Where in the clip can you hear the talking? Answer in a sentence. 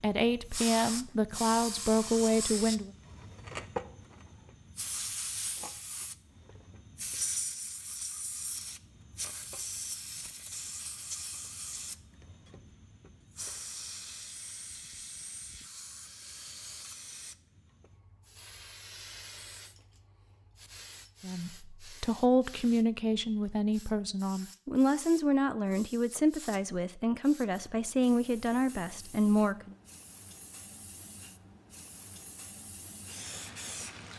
You can hear the talking from 0.0 to 2.9 s and from 21.2 to 29.8 s.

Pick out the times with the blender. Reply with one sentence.
The blender can't be heard in this clip.